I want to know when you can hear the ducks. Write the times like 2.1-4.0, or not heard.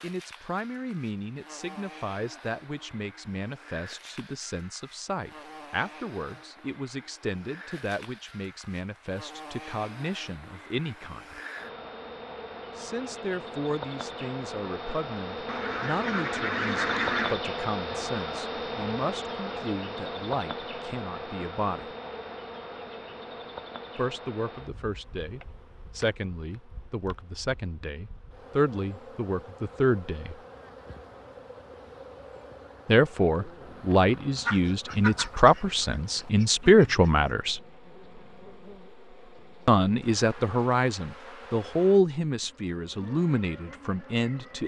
15.4-17.4, 34.5-37.1.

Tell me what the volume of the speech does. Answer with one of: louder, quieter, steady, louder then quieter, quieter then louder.
louder.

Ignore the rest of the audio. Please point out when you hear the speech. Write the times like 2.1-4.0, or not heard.
0.0-11.4, 12.8-21.9, 23.9-30.4, 32.9-37.6, 39.6-44.6.